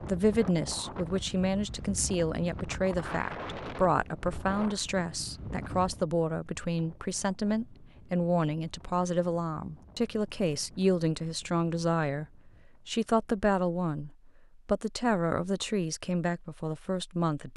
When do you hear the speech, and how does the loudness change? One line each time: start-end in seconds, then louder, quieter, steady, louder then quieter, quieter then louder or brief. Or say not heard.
0.1-17.5 steady.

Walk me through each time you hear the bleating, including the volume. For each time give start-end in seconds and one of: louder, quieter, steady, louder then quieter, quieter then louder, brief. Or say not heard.
not heard.